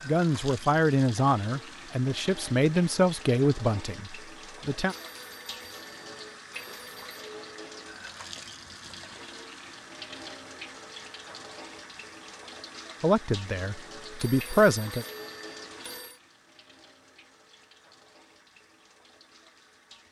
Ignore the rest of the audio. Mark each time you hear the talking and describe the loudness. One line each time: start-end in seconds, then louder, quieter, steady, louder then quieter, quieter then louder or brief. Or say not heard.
0.1-5.0 quieter
13.0-15.1 brief.